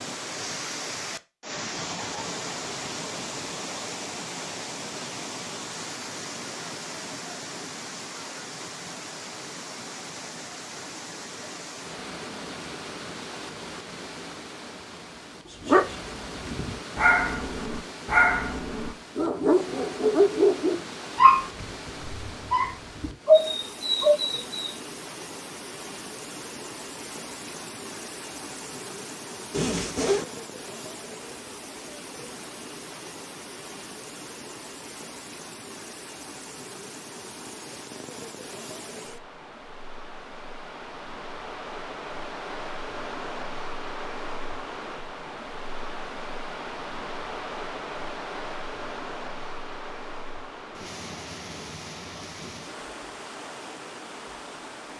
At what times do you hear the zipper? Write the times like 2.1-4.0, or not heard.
29.5-30.2.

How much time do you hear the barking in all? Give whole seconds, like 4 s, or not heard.
9 s.